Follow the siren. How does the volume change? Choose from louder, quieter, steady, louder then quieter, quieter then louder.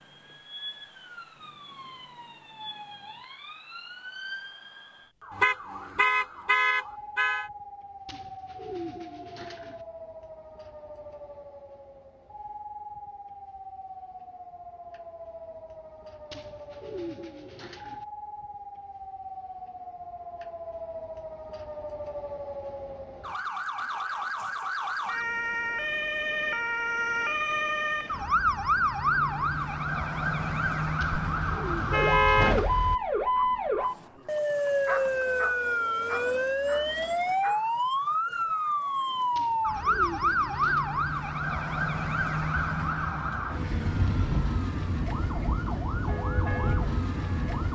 louder.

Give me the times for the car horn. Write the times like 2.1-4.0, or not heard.
5.3-7.5, 31.1-33.0.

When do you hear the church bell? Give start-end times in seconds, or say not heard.
46.0-47.6.